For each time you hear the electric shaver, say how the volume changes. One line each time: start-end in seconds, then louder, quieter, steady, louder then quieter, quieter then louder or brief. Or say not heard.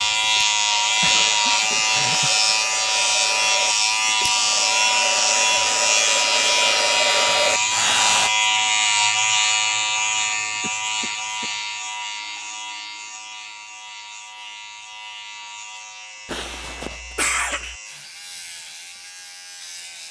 0.0-20.0 quieter.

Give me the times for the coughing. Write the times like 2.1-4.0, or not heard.
0.9-2.5, 10.4-11.5, 16.2-17.8.